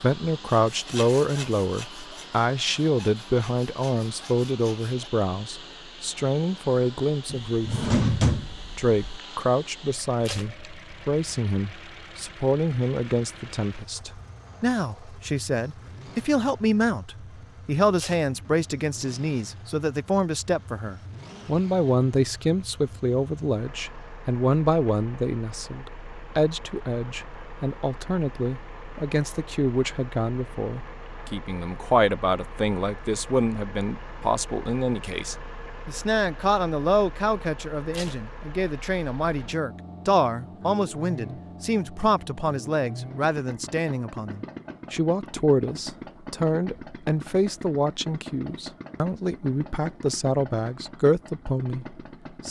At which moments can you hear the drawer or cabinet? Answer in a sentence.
The drawer or cabinet can be heard from 7.3 to 9.2 s.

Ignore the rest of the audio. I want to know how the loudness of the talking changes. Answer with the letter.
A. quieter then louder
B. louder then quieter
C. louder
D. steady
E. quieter
D.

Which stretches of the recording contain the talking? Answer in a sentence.
You can hear the talking from 0.0 to 7.8 s and from 8.8 to 52.4 s.